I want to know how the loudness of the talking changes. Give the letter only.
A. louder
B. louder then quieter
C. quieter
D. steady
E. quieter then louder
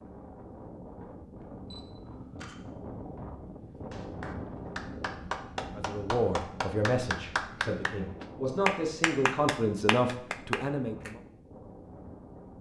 E.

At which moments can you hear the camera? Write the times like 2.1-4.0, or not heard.
1.7-2.5.